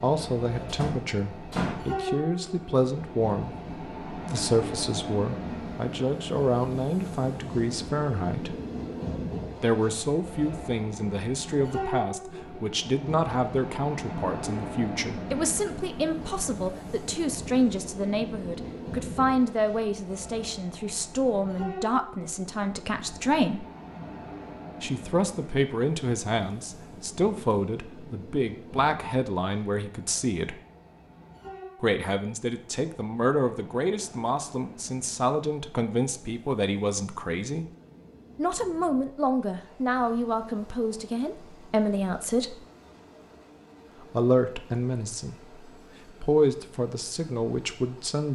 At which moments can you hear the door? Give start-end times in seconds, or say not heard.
0.7-1.9.